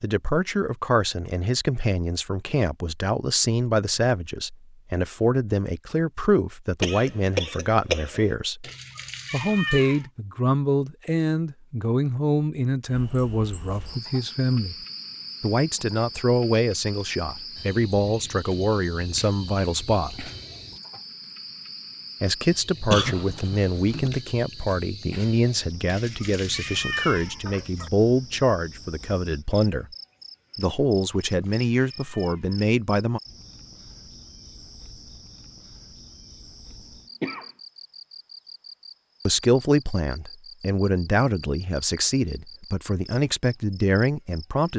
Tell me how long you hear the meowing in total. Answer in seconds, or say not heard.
5 s.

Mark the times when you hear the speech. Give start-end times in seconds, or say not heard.
0.0-8.7, 9.3-14.8, 15.4-20.3, 22.2-29.9, 30.6-33.2, 39.2-44.7.